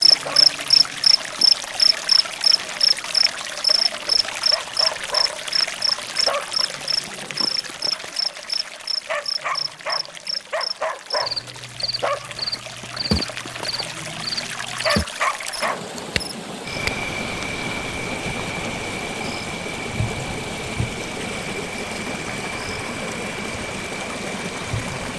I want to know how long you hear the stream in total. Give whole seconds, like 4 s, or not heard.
25 s.